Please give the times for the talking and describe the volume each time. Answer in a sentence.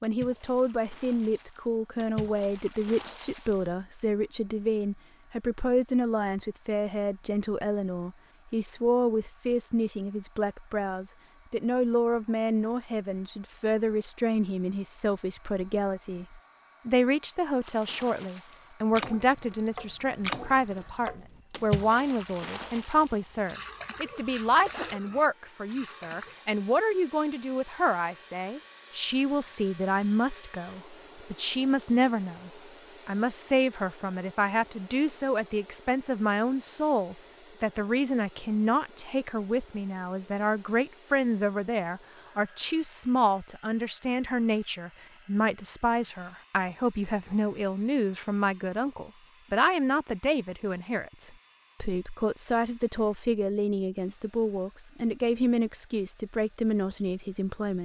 You can hear the talking from 0.0 to 57.7 s, at a steady volume.